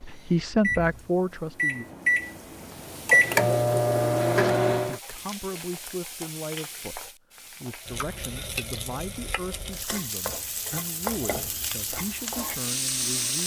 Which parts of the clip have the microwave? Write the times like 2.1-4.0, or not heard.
0.1-5.0.